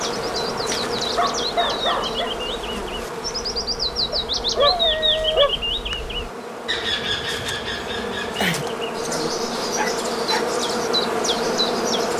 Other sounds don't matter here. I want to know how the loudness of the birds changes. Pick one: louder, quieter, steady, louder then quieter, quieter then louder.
louder then quieter.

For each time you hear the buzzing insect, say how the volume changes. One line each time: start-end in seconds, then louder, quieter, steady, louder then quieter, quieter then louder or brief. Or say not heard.
0.0-12.1 quieter then louder.